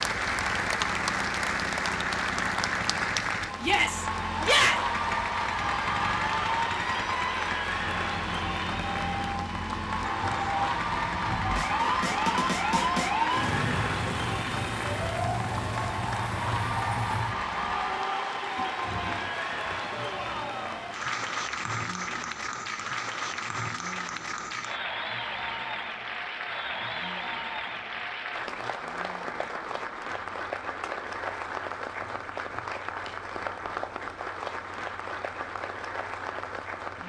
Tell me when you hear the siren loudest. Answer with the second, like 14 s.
13 s.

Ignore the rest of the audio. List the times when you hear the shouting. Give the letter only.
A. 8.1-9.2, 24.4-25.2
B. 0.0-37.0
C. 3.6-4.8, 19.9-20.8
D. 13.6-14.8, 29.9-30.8
C.